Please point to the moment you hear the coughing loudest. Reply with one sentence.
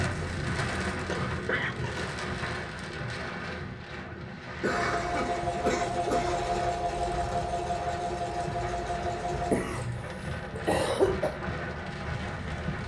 The volume of the coughing peaks at 11 seconds.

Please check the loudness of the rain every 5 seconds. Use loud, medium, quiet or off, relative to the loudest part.
loud, medium, loud.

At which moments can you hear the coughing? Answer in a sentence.
The coughing can be heard from 1.1 to 1.9 s, from 4.6 to 6.5 s and from 9.1 to 11.3 s.